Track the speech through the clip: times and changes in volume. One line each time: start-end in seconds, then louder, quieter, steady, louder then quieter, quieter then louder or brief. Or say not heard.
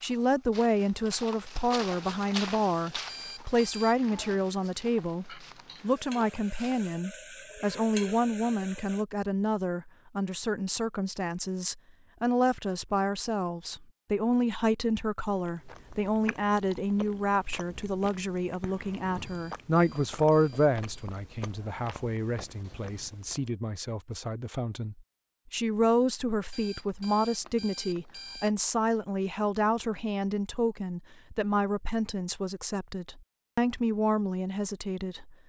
0.0-35.4 steady.